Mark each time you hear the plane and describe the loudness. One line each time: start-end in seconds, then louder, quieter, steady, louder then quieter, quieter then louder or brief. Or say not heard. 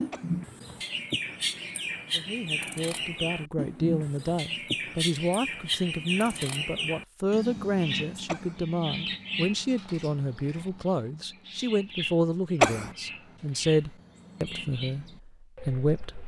not heard.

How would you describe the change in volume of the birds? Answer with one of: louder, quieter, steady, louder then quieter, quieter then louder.
quieter.